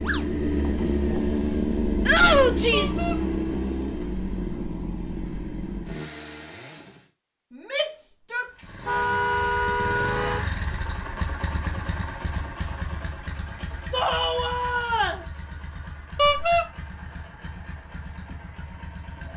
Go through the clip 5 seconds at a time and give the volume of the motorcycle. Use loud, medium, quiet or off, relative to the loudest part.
loud, medium, medium, quiet.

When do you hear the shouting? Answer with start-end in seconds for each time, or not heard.
2.0-3.0, 7.5-8.5, 13.9-15.2.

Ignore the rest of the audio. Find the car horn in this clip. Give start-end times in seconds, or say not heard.
2.7-3.2, 8.8-10.4, 16.1-16.6.